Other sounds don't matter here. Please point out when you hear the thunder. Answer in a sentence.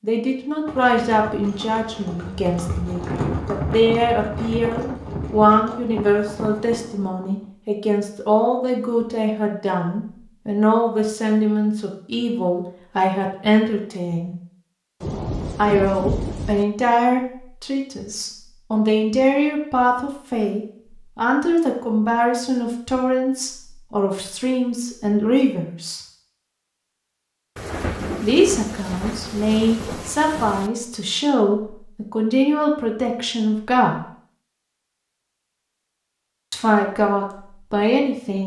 You can hear the thunder from 2.9 to 7.3 s, from 15.0 to 16.6 s and from 27.6 to 30.7 s.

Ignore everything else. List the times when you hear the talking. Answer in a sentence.
The talking can be heard from 0.0 to 14.3 s, from 15.6 to 26.0 s, from 28.2 to 34.0 s and from 36.5 to 38.4 s.